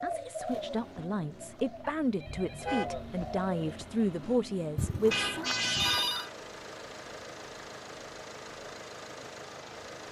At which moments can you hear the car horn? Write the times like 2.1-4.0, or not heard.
2.2-3.1, 5.1-6.3.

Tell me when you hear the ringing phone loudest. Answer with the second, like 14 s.
6 s.